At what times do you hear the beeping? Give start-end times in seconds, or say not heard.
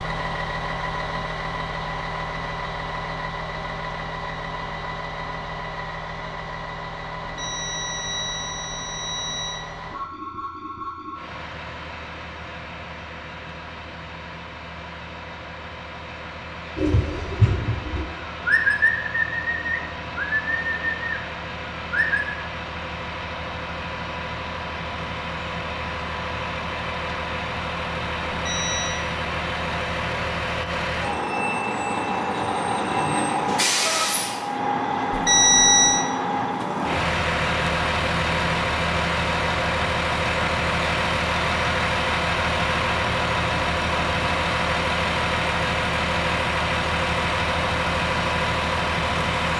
7.2-9.7, 28.3-29.0, 35.1-36.0.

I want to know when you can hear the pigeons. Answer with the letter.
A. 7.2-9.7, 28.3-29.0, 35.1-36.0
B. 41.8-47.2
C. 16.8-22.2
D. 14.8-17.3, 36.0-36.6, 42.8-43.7
C.